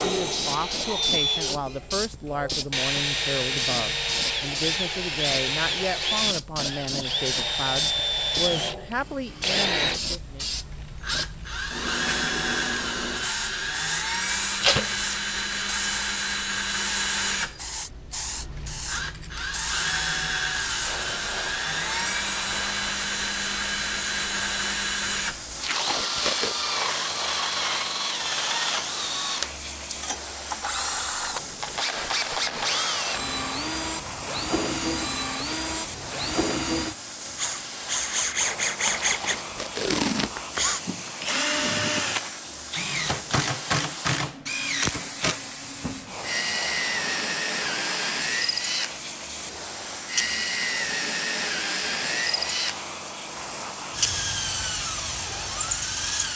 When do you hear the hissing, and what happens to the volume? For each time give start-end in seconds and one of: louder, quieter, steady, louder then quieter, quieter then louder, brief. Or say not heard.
0.1-56.3 steady.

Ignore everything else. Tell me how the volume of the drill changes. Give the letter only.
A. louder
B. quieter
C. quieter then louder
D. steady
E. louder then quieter
D.